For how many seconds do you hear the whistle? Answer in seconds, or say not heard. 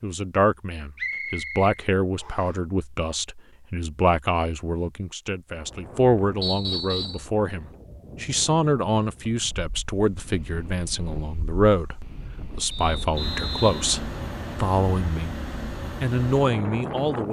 4 s.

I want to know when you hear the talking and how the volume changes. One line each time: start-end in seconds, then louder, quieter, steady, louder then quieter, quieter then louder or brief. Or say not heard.
0.0-15.3 steady
16.0-17.2 brief.